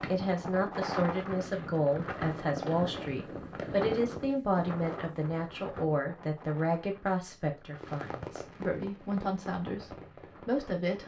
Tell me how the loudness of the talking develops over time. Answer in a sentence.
The volume of the talking stays about the same.